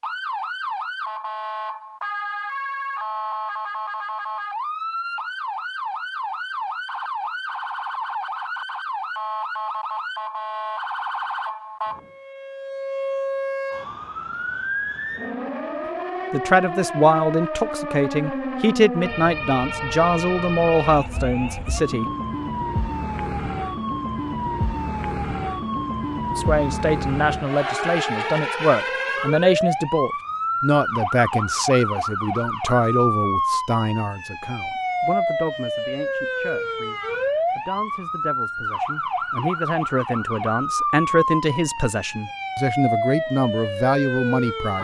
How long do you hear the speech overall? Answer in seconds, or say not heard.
24 s.